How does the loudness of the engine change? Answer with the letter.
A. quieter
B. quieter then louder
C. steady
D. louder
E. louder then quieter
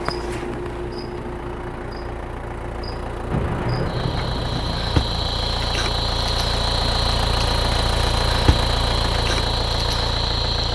D.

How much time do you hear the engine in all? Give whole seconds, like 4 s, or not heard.
11 s.